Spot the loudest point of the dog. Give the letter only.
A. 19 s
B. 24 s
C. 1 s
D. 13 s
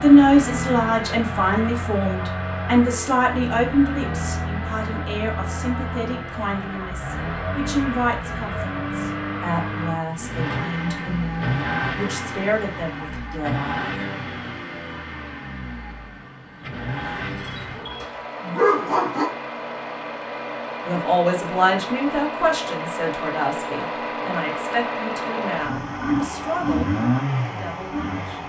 A.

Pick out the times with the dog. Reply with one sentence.
The dog can be heard from 17.2 to 19.2 s.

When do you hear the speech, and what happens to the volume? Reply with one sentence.
The speech can be heard from 0.0 to 13.9 s, getting quieter; and from 20.9 to 28.4 s, getting quieter.